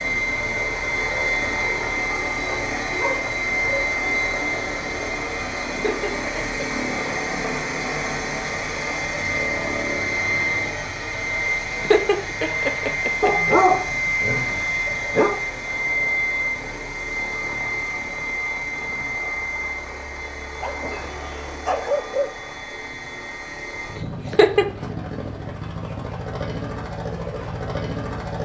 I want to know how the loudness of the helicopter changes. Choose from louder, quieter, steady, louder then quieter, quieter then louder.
quieter.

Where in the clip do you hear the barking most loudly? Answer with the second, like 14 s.
14 s.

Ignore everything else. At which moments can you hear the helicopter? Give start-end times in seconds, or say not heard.
0.0-28.4.